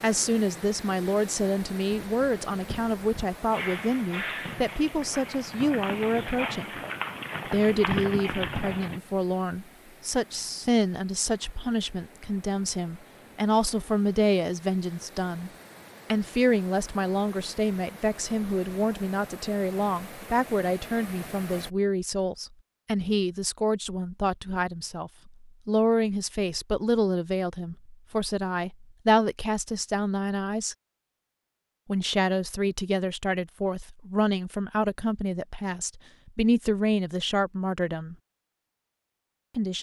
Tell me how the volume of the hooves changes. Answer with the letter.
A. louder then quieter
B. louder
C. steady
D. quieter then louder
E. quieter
B.